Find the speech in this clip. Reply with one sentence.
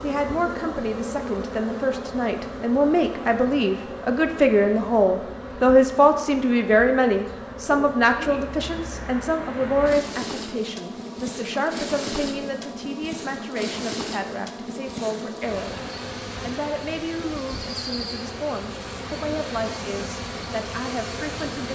The speech can be heard from 0.0 to 15.8 s and from 16.4 to 21.7 s.